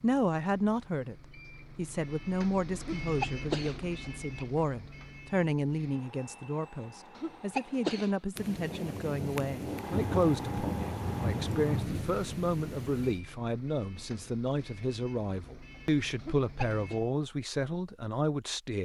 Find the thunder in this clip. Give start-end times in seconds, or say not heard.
8.3-13.2.